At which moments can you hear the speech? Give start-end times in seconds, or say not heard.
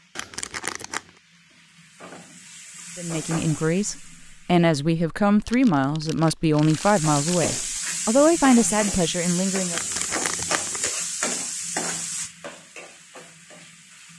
3.0-9.8.